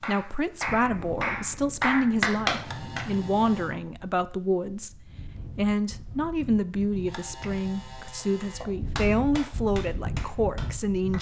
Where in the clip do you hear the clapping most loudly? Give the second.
2 s.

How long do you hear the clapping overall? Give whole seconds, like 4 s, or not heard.
6 s.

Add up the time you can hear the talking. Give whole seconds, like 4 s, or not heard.
11 s.